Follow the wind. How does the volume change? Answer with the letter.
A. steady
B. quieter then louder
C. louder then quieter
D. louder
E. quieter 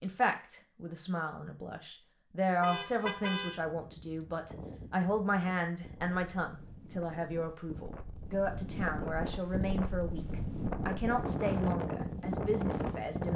D.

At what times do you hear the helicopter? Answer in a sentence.
You can't hear the helicopter here.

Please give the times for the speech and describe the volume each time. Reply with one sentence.
You can hear the speech from 0.0 to 13.3 s, at a steady volume.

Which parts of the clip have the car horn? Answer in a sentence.
You can hear the car horn from 2.6 to 3.6 s.